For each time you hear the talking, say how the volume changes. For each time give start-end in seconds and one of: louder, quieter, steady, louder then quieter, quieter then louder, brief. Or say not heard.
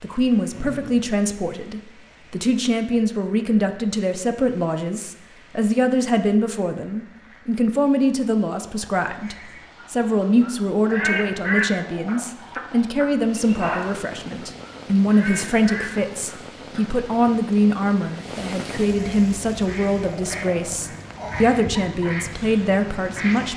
0.0-23.5 steady.